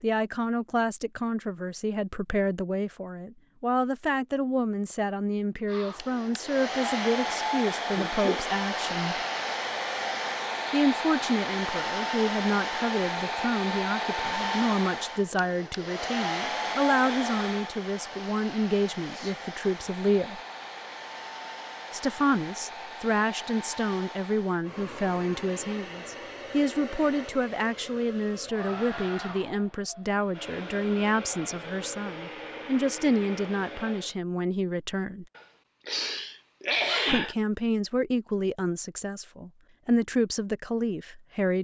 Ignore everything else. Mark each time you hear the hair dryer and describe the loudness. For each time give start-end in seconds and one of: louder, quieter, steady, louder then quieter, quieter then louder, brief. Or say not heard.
5.7-34.1 quieter.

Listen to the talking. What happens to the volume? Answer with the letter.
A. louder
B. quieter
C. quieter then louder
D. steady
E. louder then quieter
D.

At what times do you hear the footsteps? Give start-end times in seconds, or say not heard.
not heard.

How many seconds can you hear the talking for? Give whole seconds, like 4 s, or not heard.
37 s.